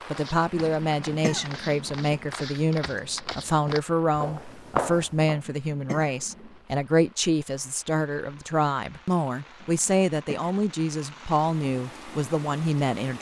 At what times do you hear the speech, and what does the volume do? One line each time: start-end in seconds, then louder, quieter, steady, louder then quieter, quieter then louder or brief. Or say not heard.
0.1-13.1 steady.